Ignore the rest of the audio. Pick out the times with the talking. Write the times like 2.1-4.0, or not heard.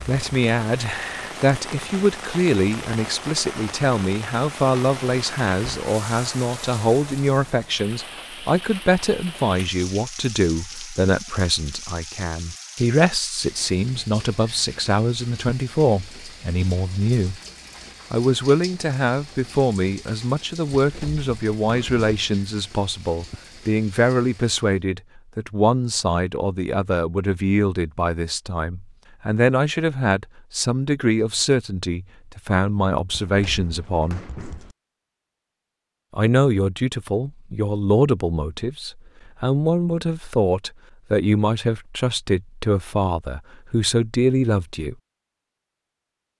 0.1-17.4, 18.1-34.2, 36.1-45.0.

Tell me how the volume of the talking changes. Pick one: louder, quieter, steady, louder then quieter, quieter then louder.
steady.